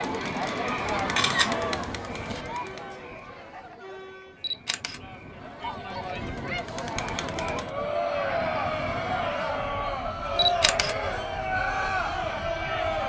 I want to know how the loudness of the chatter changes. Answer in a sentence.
The volume of the chatter goes down, then up.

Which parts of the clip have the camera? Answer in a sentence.
The camera can be heard from 0.9 to 2.5 s, from 4.4 to 5.0 s and from 10.3 to 10.9 s.